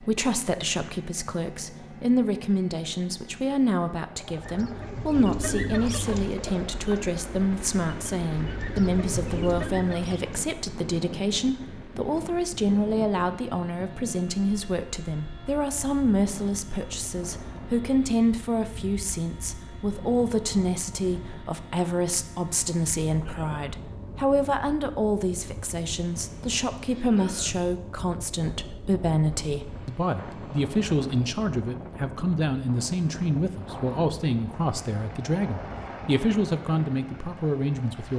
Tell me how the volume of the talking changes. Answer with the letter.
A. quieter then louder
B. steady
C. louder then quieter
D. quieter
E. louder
B.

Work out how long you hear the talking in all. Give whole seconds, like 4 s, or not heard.
38 s.